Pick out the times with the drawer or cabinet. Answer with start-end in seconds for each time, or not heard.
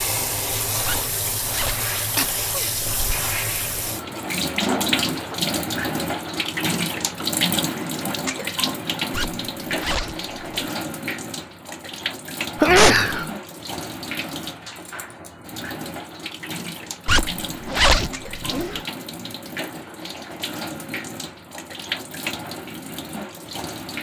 not heard.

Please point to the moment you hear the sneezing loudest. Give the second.
13 s.